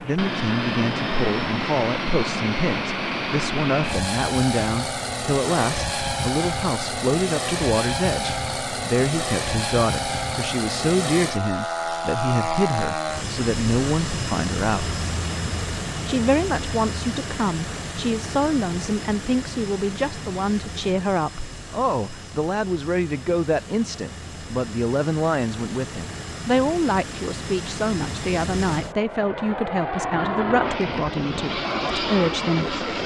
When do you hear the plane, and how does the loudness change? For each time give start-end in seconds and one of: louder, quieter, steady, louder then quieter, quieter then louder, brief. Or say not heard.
0.0-33.0 quieter then louder.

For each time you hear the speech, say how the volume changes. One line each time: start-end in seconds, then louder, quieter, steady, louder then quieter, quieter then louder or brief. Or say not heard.
0.0-14.9 steady
16.1-32.8 steady.